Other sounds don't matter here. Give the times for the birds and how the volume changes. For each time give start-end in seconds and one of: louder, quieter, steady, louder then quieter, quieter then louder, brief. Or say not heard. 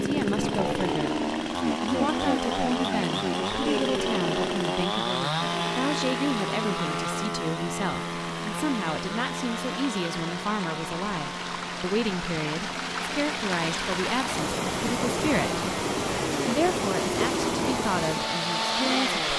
not heard.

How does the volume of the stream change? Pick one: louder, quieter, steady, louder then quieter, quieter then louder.
louder.